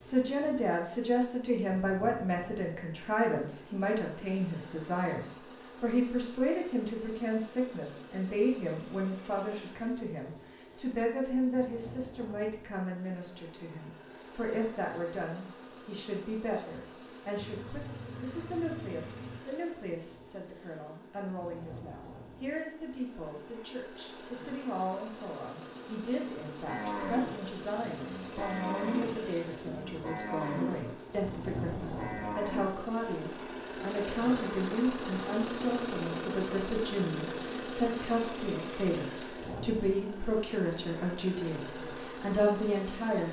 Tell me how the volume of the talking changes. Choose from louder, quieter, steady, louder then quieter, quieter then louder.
quieter then louder.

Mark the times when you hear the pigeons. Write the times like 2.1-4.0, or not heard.
not heard.